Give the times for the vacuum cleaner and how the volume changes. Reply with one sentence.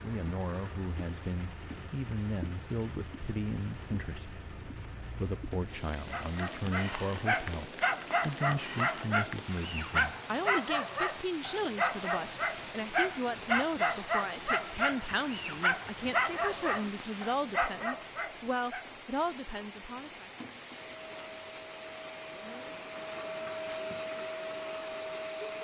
You can hear the vacuum cleaner from 20.9 to 25.5 s, getting louder.